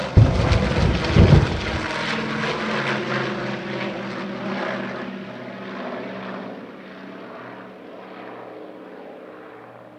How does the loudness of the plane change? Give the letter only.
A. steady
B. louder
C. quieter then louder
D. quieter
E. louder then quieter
D.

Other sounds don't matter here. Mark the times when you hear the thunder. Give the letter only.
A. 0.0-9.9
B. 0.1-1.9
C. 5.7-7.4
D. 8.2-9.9
B.